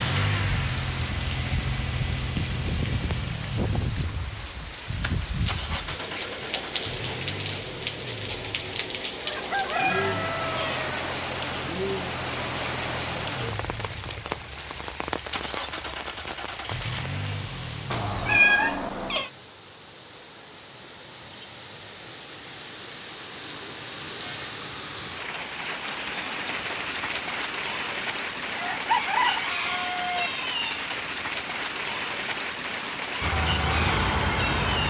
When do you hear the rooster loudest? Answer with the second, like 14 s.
29 s.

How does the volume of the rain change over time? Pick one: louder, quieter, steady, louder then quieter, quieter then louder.
quieter then louder.